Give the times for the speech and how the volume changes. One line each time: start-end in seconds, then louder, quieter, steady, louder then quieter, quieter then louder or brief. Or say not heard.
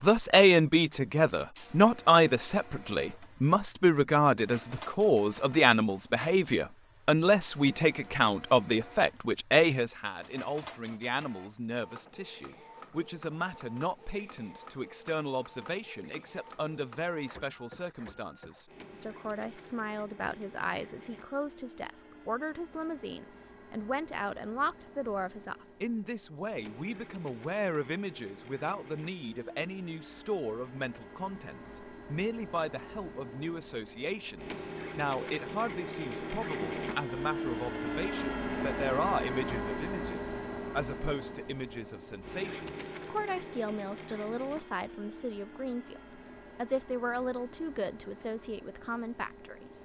0.0-49.7 quieter.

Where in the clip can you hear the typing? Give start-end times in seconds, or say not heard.
not heard.